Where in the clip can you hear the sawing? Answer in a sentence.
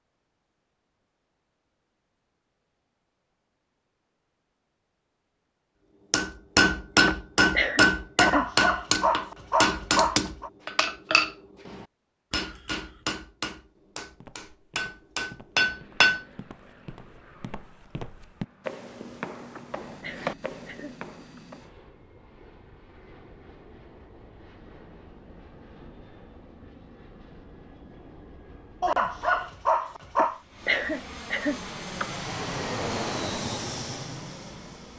You can't hear the sawing here.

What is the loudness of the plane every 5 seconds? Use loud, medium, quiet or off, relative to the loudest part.
off, off, off, quiet, quiet, quiet, loud.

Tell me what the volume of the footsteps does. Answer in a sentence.
The volume of the footsteps goes up.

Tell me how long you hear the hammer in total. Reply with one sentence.
The hammer can be heard for 10 seconds in total.